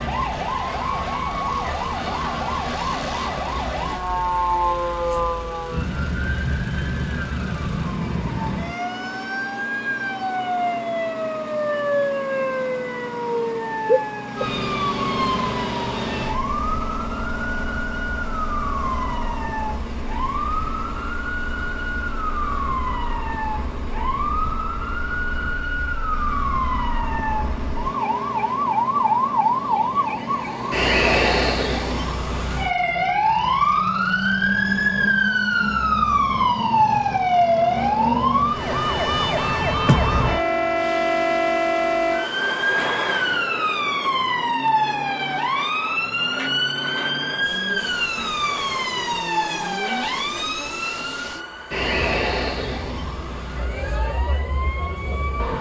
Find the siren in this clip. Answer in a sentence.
You can hear the siren from 0.0 to 55.5 s.